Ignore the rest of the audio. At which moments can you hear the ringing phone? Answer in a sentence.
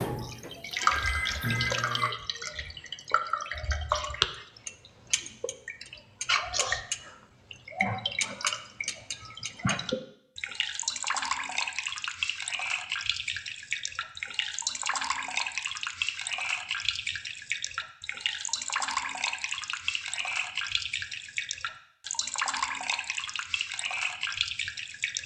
The ringing phone can be heard from 0.8 to 2.0 s.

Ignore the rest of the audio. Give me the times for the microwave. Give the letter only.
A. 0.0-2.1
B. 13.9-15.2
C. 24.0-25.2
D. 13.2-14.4
A.